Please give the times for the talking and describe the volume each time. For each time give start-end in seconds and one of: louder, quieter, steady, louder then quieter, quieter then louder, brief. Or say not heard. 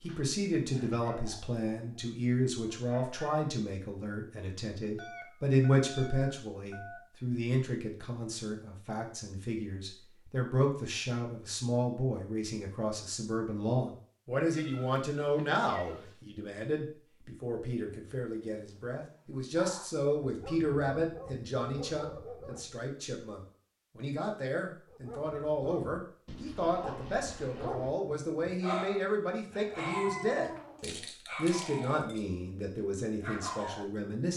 0.0-34.3 steady.